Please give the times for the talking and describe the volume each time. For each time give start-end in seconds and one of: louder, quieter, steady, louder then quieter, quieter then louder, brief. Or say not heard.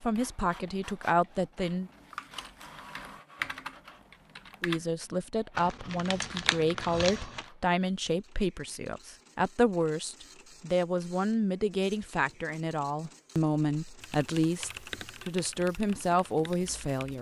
0.0-1.9 brief
4.6-17.1 steady.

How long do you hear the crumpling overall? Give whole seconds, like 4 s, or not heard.
2 s.